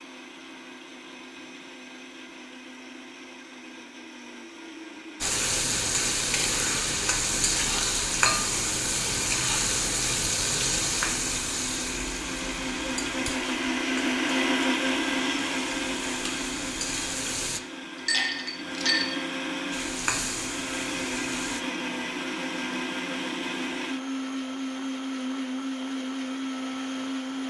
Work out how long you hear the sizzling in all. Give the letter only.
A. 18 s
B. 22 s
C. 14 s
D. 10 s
C.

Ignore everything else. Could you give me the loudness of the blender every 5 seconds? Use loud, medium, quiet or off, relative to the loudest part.
quiet, quiet, loud, loud, loud, loud.